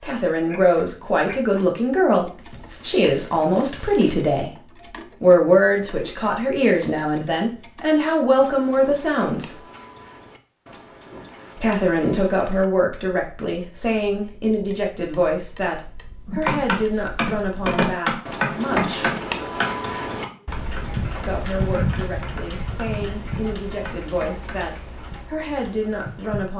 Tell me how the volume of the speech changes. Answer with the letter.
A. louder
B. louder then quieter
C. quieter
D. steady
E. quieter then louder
C.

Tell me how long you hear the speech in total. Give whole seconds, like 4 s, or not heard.
22 s.